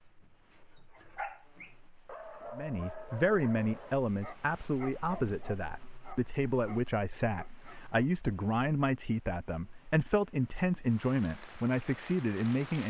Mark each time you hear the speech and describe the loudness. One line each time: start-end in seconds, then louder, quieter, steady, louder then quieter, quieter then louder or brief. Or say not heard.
2.5-12.8 steady.